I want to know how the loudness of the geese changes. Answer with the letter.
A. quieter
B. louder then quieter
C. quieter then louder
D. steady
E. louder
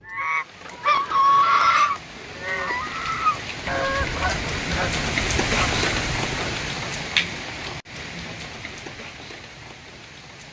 A.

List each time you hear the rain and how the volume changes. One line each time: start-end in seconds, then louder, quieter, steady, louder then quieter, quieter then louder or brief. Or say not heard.
0.0-10.4 louder then quieter.